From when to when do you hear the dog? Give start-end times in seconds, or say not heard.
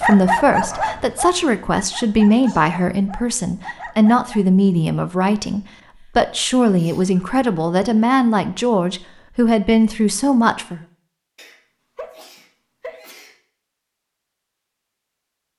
0.0-4.5.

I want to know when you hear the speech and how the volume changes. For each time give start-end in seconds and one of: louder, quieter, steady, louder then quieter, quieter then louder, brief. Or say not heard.
0.0-10.8 steady.